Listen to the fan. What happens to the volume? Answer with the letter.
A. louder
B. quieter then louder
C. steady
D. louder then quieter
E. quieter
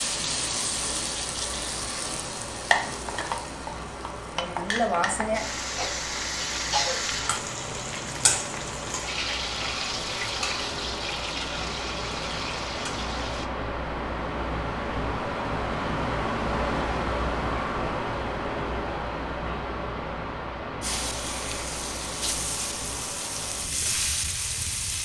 D.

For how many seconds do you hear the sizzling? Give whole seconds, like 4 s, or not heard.
18 s.